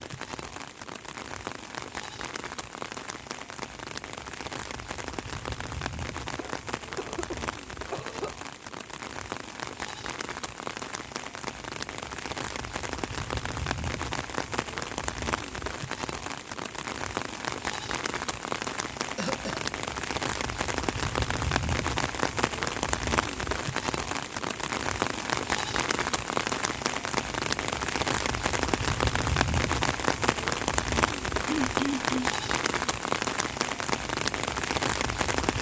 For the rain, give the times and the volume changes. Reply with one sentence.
You can hear the rain from 0.0 to 35.5 s, getting louder.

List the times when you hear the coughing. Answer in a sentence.
The coughing can be heard from 6.3 to 8.3 s, from 19.1 to 19.6 s and from 31.4 to 32.3 s.